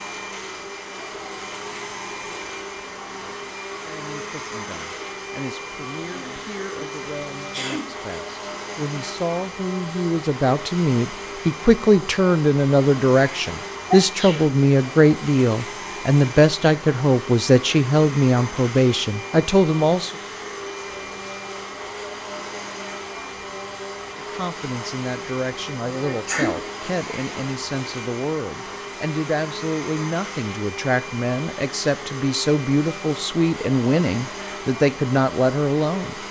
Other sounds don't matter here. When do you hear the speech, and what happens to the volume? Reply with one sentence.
You can hear the speech from 3.8 to 20.1 s, getting louder; and from 24.1 to 36.2 s, getting louder.